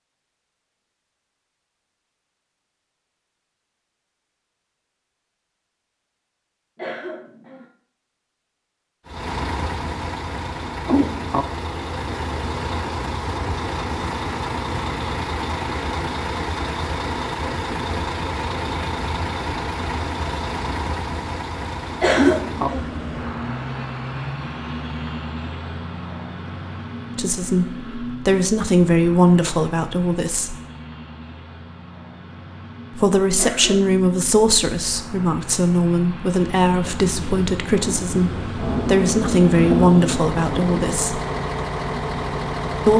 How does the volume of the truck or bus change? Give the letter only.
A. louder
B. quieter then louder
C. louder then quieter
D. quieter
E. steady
B.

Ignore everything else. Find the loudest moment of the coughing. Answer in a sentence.
The loudest moment of the coughing is at 22 seconds.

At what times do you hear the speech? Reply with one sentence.
The speech can be heard from 27.1 to 30.6 s and from 33.0 to 41.2 s.